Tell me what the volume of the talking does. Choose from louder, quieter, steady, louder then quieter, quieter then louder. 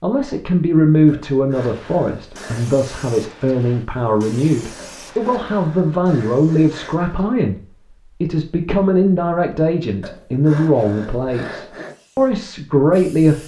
steady.